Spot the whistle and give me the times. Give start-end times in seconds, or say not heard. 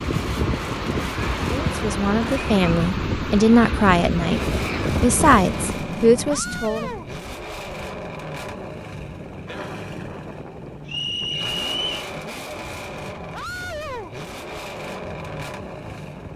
10.8-11.9.